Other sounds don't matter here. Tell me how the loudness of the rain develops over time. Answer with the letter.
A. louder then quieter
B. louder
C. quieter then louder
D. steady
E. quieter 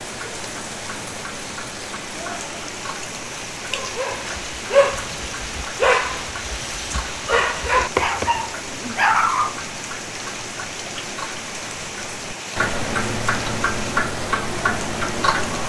D.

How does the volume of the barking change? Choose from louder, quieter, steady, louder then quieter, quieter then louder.
quieter then louder.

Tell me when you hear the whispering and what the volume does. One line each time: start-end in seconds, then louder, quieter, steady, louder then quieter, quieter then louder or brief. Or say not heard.
not heard.